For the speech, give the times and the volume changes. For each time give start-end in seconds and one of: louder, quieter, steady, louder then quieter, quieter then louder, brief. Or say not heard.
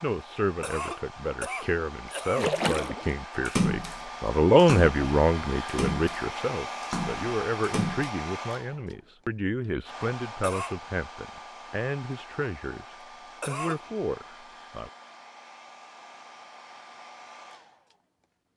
0.0-14.9 louder then quieter.